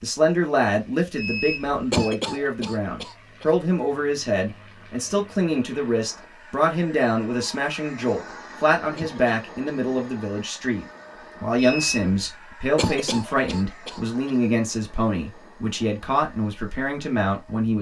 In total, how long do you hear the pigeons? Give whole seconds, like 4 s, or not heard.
not heard.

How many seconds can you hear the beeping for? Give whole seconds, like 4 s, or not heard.
2 s.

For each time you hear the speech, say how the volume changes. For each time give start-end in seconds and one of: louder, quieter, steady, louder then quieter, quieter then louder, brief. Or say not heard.
0.0-17.7 steady.